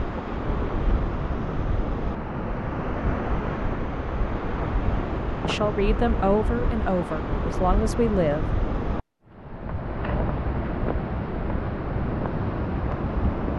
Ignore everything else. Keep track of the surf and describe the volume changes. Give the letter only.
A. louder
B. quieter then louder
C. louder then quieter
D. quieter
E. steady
E.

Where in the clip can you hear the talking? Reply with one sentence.
The talking can be heard from 5.5 to 8.6 s.